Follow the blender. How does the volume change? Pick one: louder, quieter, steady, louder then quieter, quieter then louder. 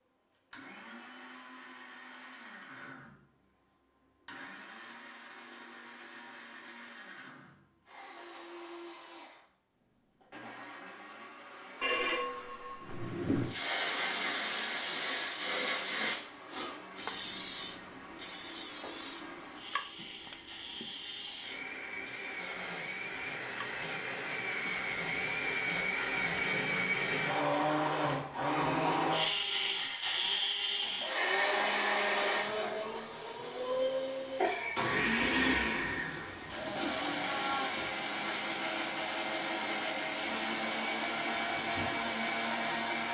louder.